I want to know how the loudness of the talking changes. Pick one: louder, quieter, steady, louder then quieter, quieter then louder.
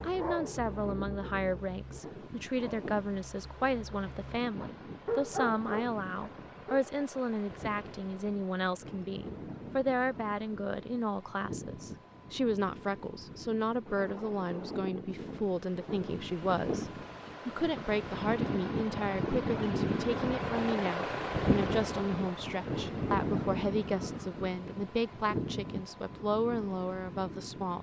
steady.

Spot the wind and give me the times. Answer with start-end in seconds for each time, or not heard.
0.0-27.7.